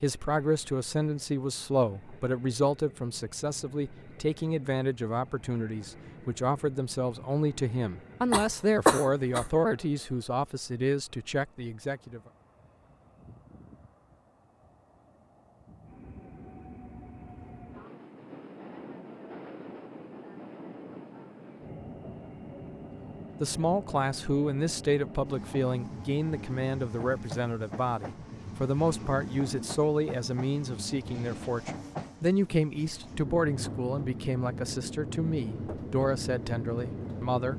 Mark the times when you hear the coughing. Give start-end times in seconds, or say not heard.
8.3-9.4.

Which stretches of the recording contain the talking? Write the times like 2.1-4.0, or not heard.
0.0-12.2, 23.4-37.5.